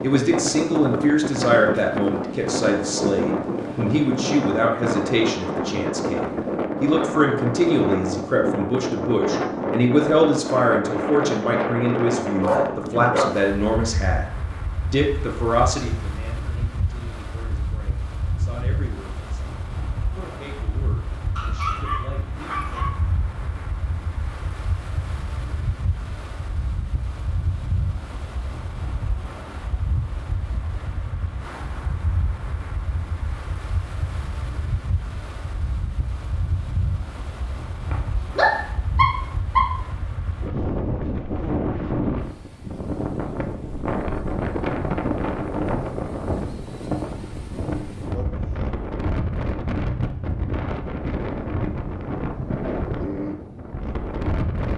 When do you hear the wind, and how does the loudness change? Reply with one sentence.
The wind can be heard from 0.0 to 54.7 s, getting quieter then louder.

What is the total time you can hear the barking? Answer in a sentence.
You can hear the barking for 4 seconds altogether.